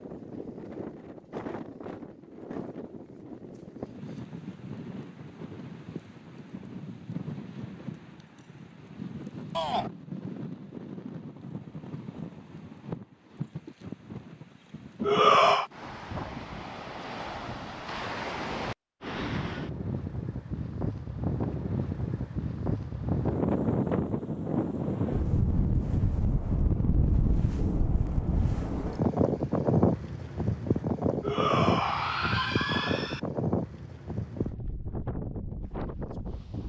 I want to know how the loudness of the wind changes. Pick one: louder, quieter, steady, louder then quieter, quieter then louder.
louder.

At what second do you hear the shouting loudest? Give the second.
15 s.